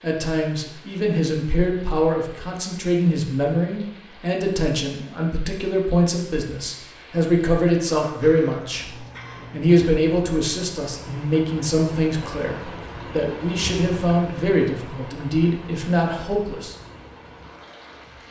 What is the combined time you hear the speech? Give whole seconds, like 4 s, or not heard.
17 s.